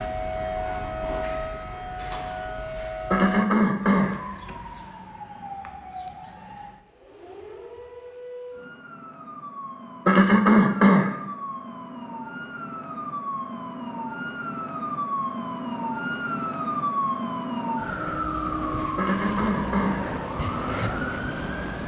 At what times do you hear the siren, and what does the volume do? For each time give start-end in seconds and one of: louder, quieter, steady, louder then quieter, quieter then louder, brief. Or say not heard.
0.0-21.8 quieter then louder.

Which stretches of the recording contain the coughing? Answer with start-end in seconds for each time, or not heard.
3.1-4.2, 10.1-11.1, 18.9-20.1.